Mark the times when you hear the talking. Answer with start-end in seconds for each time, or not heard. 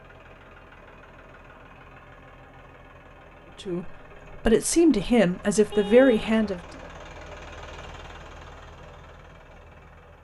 3.6-6.6.